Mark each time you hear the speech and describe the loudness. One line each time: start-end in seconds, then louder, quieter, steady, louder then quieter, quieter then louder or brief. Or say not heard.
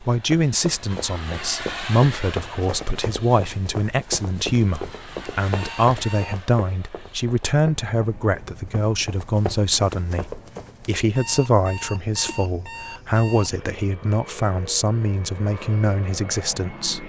0.0-17.0 steady.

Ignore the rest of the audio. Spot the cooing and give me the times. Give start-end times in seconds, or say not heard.
not heard.